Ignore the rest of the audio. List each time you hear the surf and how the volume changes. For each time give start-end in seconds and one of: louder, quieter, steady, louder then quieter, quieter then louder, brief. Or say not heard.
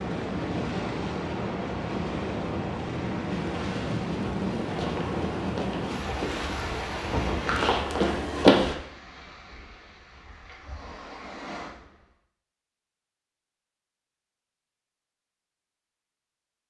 0.0-12.1 quieter.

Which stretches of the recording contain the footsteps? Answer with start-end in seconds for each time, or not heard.
3.2-8.8.